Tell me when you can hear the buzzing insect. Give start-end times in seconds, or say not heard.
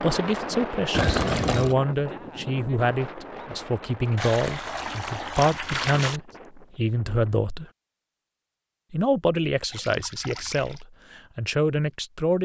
not heard.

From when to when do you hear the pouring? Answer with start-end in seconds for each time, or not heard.
0.9-1.8, 4.2-6.2, 9.7-10.8.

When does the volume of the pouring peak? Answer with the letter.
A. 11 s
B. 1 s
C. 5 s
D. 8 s
B.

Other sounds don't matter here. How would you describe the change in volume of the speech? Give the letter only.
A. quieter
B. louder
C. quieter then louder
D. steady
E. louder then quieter
D.